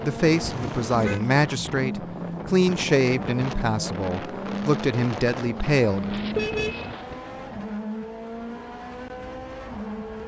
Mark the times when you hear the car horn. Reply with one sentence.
You can hear the car horn from 0.5 to 1.2 s and from 6.3 to 6.9 s.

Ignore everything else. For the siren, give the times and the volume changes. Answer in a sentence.
You can't hear the siren here.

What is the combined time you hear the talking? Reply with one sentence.
The talking can be heard for 6 seconds in total.